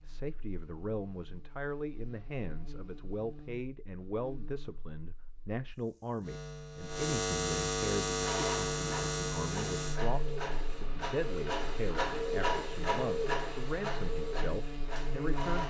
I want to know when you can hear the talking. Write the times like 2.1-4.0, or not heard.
0.0-15.6.